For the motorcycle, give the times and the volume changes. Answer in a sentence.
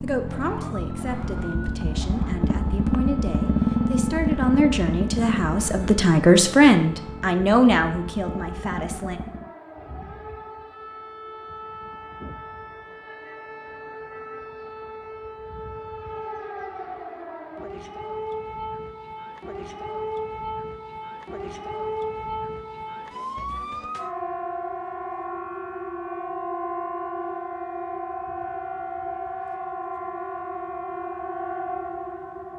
You can hear the motorcycle from 0.0 to 9.5 s, getting louder then quieter.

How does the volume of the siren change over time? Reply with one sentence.
The loudness of the siren goes up.